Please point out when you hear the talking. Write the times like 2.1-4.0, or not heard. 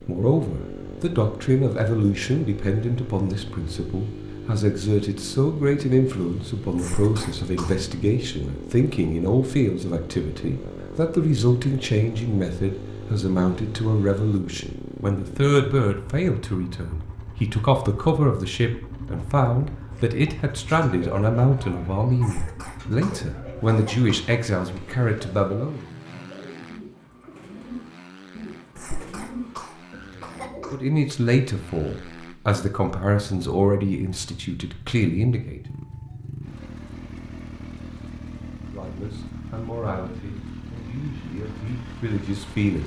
0.1-25.9, 30.7-35.6, 38.7-42.8.